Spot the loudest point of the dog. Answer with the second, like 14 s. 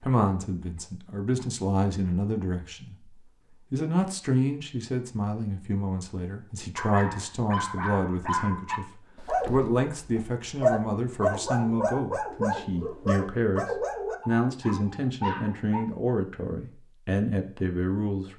11 s.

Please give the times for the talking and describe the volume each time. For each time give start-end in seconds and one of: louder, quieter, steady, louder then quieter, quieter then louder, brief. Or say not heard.
0.0-18.3 steady.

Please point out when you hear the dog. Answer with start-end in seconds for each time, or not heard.
6.8-15.8.